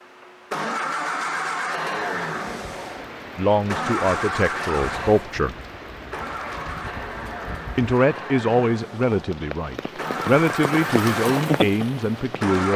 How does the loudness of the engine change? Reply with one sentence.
The volume of the engine goes down, then up.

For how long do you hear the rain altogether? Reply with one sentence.
You can hear the rain for 11 seconds altogether.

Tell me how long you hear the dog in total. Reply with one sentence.
You can't hear the dog here.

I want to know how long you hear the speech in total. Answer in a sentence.
You can hear the speech for 7 seconds altogether.